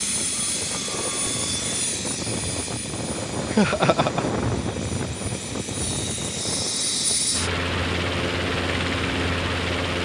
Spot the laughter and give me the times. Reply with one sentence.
The laughter can be heard from 3.5 to 4.4 s.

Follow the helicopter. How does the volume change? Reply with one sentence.
The loudness of the helicopter goes down, then up.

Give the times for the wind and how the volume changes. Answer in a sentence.
The wind can be heard from 0.0 to 9.8 s, getting louder then quieter.